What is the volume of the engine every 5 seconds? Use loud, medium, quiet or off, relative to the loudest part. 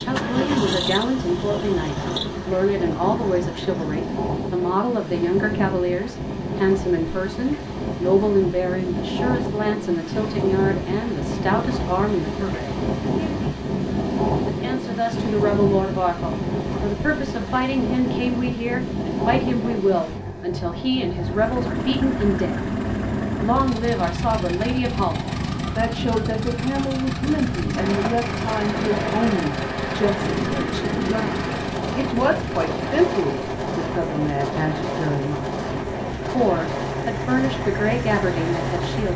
loud, off, off, off, loud, loud, loud, loud.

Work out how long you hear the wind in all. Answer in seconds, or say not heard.
39 s.